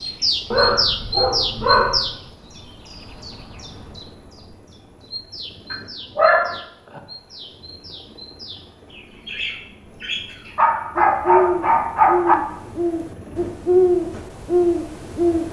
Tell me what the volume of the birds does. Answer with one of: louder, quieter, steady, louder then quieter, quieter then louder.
quieter then louder.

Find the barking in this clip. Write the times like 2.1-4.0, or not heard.
0.5-2.1, 5.7-7.0, 10.6-12.3.